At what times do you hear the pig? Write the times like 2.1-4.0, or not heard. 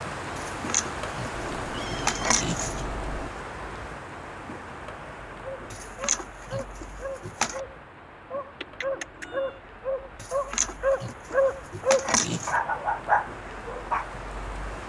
0.3-2.9, 5.7-7.6, 10.2-12.6.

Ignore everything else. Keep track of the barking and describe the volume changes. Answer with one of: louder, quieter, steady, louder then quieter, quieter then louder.
louder.